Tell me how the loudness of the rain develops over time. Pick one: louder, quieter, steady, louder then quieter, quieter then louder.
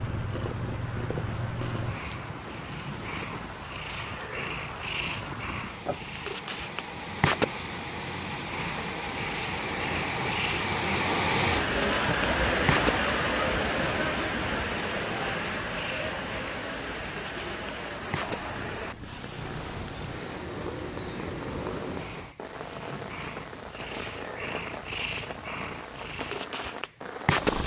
louder then quieter.